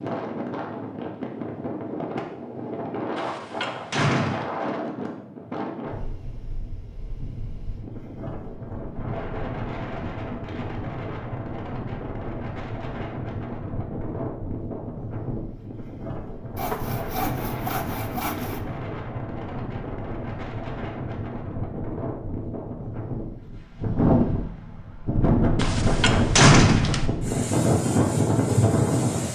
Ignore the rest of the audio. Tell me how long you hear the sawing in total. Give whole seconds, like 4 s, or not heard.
2 s.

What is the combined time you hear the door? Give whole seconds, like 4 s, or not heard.
3 s.